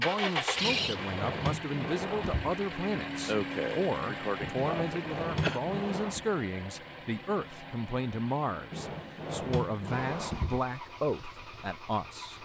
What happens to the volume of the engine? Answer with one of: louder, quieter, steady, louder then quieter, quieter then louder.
quieter.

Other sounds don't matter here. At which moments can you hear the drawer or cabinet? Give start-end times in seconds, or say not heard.
0.6-2.5, 4.5-6.2, 8.7-10.6.